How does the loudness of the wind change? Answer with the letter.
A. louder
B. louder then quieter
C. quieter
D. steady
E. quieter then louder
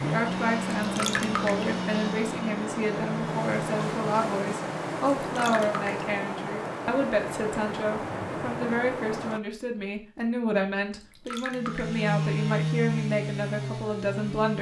D.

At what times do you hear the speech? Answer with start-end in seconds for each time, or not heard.
0.0-14.5.